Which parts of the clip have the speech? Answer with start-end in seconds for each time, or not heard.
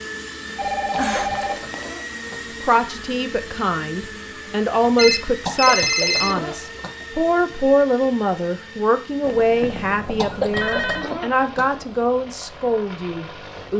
2.6-13.7.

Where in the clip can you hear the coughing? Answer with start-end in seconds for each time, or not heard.
0.9-2.5, 5.5-7.2, 10.2-11.8.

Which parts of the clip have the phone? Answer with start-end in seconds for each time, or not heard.
0.6-1.9, 5.0-6.3, 9.2-11.1.